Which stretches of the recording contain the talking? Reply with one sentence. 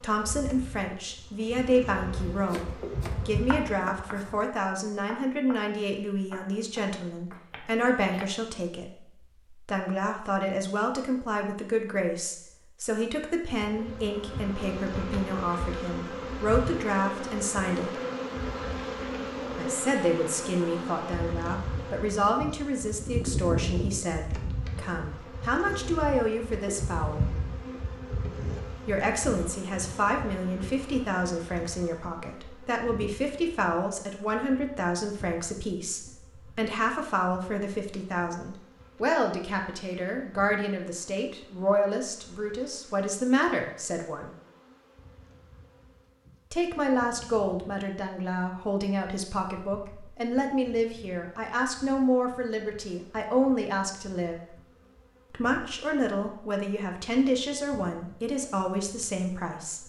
The talking can be heard from 0.0 to 18.0 s, from 19.6 to 27.4 s, from 28.9 to 44.3 s, from 46.5 to 54.5 s and from 55.3 to 59.8 s.